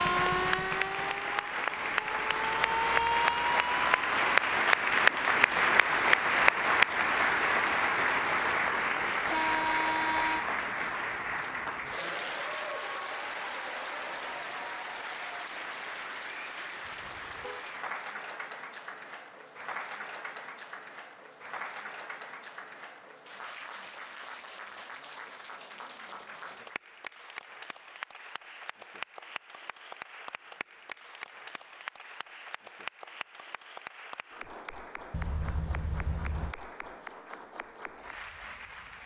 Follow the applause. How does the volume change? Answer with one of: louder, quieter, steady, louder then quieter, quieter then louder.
quieter.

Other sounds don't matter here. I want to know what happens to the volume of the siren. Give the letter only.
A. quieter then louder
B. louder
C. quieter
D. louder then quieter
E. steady
A.